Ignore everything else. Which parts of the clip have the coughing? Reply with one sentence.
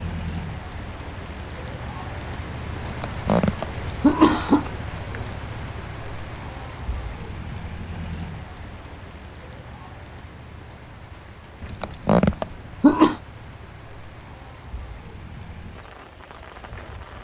You can hear the coughing from 2.8 to 4.7 s and from 11.6 to 13.2 s.